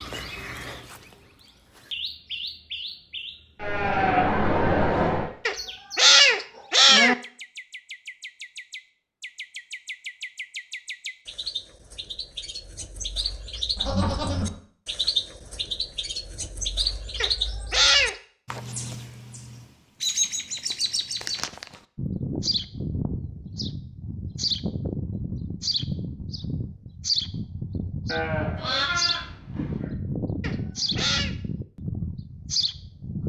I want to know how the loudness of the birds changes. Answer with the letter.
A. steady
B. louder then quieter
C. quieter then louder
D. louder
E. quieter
D.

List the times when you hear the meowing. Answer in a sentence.
The meowing can be heard from 5.5 to 7.2 s, from 17.2 to 18.1 s and from 30.4 to 31.3 s.